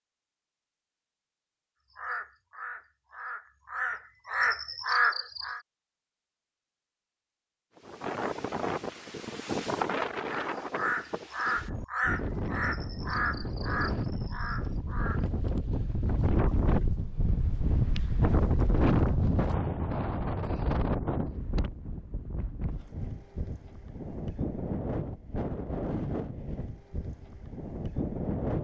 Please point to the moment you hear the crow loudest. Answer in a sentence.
The volume of the crow peaks at 5 seconds.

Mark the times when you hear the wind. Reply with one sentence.
You can hear the wind from 7.8 to 28.5 s.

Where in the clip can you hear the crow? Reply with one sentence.
You can hear the crow from 1.9 to 5.6 s and from 10.2 to 15.2 s.